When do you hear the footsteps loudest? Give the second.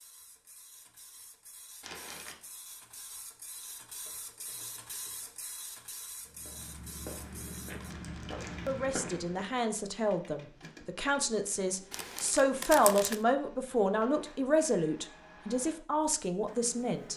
9 s.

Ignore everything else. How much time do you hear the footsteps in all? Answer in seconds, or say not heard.
3 s.